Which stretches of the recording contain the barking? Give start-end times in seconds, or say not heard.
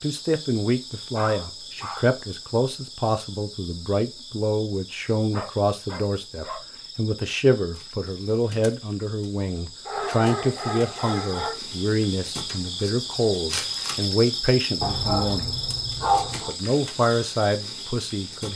1.1-2.0, 5.3-6.6, 9.8-11.6, 14.8-16.5.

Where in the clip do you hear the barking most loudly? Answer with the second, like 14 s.
16 s.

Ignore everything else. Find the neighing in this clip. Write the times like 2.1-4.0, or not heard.
not heard.